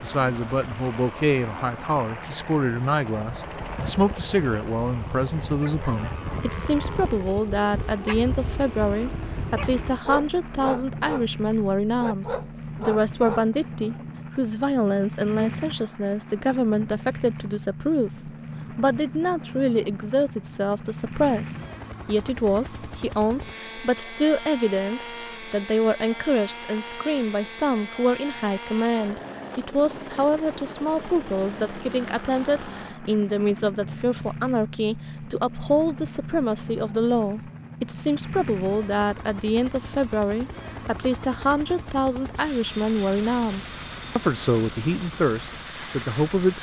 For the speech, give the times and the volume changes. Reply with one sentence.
You can hear the speech from 0.0 to 46.5 s, at a steady volume.